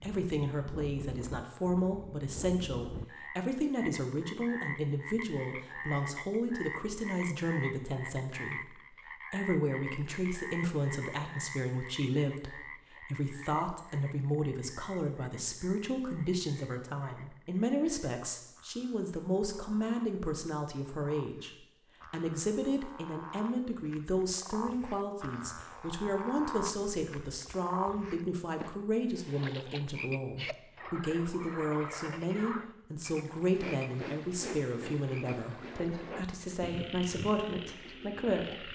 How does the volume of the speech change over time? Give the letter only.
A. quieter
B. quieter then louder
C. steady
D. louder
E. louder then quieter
C.